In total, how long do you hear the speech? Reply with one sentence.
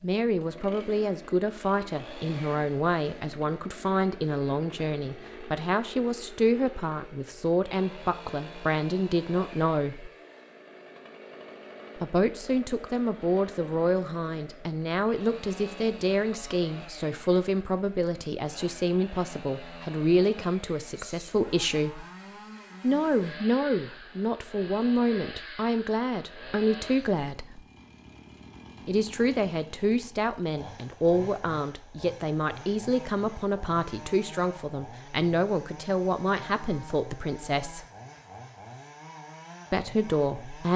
The speech can be heard for 35 seconds in total.